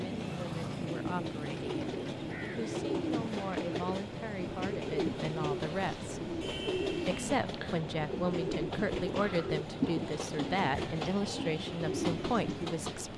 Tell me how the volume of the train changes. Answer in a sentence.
The loudness of the train stays about the same.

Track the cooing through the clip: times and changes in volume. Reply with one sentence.
You can hear the cooing from 1.1 to 12.8 s, at a steady volume.